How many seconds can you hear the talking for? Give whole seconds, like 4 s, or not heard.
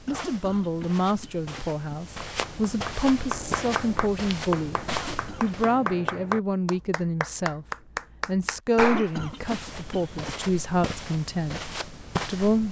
11 s.